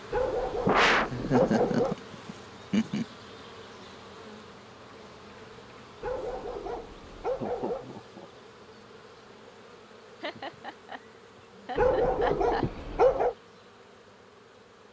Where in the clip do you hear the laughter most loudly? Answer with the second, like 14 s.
1 s.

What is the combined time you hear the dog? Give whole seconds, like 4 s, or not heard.
5 s.